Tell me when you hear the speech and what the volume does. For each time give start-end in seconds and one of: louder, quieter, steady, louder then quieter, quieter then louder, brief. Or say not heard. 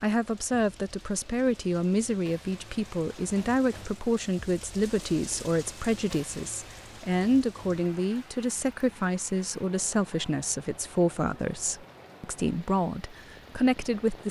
0.0-14.2 steady.